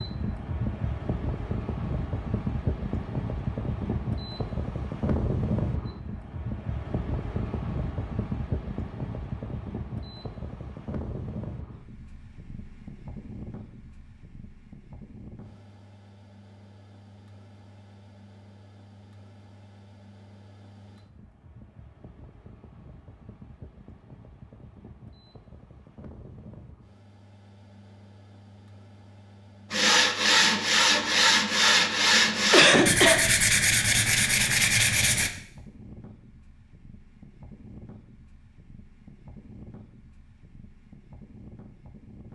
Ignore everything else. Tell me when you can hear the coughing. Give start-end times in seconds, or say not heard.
32.5-33.2.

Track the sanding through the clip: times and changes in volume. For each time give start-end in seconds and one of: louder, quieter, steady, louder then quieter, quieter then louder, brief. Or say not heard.
29.7-35.3 steady.